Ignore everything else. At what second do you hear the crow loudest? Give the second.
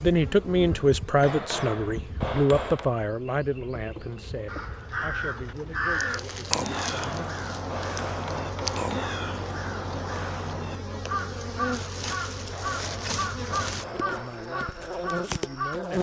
6 s.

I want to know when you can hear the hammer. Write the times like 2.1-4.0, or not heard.
1.2-2.9, 6.7-9.2, 12.5-14.3.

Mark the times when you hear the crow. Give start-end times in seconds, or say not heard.
4.5-15.8.